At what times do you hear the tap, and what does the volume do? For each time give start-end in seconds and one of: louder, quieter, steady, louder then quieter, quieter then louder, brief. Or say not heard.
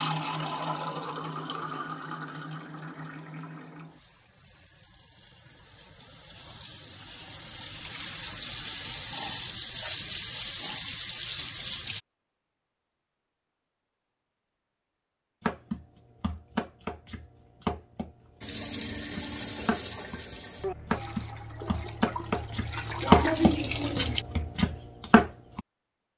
0.0-12.0 quieter then louder
18.4-24.2 quieter then louder.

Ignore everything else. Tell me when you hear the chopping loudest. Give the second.
23 s.